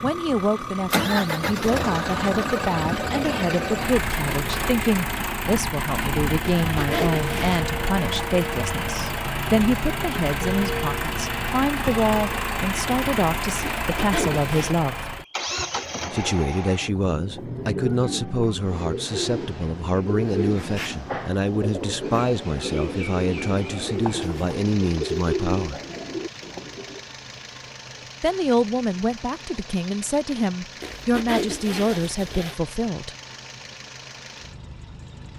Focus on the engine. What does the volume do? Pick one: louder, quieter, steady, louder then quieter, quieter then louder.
quieter.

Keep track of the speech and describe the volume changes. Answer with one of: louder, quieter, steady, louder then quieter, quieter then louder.
steady.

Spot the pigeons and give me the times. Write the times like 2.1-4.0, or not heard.
16.8-27.0.